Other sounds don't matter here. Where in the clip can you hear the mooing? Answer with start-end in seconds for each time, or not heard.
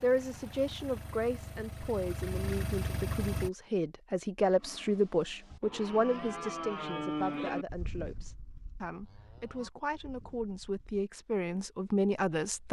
4.5-11.1.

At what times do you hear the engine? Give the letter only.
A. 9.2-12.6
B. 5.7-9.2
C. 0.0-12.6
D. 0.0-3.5
D.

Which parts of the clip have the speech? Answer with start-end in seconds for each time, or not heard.
0.0-12.6.